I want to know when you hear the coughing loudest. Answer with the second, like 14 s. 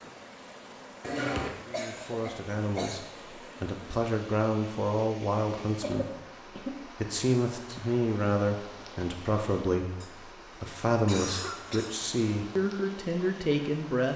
1 s.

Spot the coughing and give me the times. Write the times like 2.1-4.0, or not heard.
1.0-3.0, 5.8-6.8, 10.0-11.9.